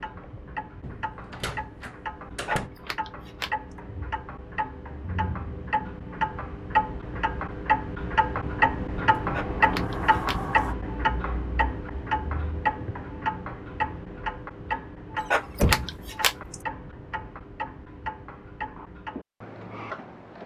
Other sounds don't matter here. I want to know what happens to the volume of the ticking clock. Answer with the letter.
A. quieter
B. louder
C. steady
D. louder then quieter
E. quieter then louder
D.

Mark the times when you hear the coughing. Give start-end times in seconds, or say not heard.
not heard.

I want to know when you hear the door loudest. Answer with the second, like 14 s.
16 s.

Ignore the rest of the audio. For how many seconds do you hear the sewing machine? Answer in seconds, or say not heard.
not heard.